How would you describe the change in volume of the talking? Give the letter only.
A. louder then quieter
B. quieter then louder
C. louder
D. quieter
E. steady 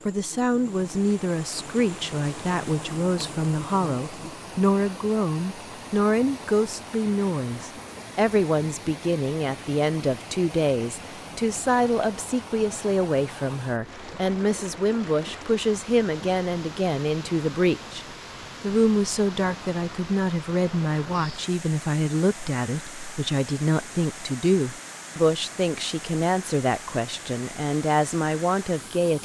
E.